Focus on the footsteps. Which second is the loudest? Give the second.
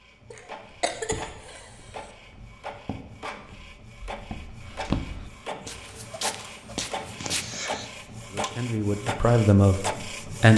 5 s.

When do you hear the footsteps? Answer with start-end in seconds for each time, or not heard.
0.9-7.5.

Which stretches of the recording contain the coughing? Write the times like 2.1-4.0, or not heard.
0.3-2.1, 7.2-7.9.